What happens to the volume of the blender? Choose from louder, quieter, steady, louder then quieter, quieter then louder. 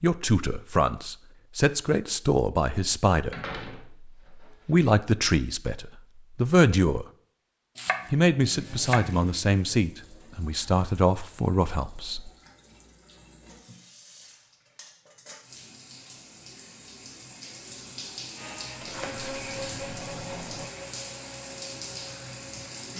quieter.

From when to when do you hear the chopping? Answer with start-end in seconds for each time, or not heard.
7.8-9.2.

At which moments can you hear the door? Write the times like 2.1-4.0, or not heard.
3.3-4.8, 18.8-20.6.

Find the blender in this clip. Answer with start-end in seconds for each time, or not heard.
18.4-22.9.